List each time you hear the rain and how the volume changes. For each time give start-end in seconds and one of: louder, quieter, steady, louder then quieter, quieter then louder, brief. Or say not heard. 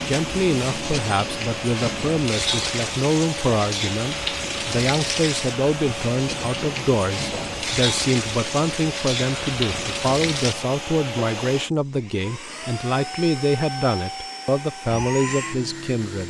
0.0-10.6 steady.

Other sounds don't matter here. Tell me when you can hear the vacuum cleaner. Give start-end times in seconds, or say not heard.
0.0-16.2.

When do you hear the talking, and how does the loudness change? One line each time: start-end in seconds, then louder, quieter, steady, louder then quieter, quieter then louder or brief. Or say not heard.
0.1-16.2 steady.